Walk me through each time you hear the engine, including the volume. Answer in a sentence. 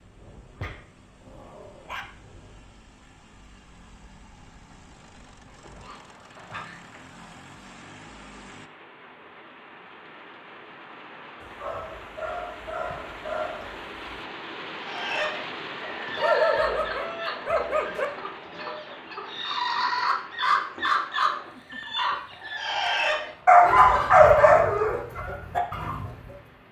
The engine can be heard from 0.0 to 8.7 s, getting louder.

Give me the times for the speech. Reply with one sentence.
You can't hear the speech here.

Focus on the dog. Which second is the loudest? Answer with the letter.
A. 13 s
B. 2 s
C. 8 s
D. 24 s
D.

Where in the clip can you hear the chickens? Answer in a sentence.
The chickens can be heard from 14.8 to 26.4 s.